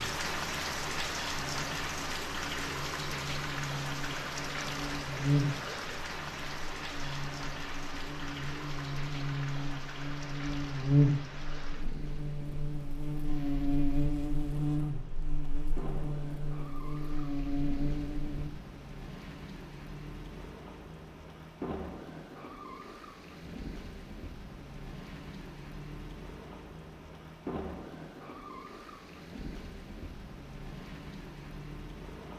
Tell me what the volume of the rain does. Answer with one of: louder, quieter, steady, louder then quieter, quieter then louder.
quieter.